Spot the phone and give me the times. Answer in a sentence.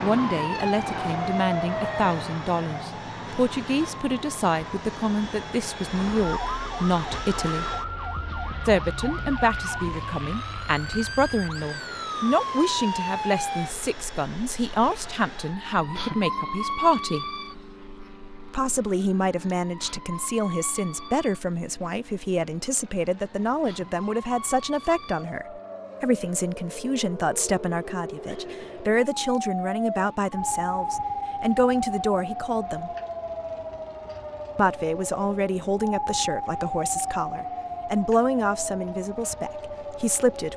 The phone can't be heard in this clip.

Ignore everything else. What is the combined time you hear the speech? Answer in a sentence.
You can hear the speech for 37 seconds altogether.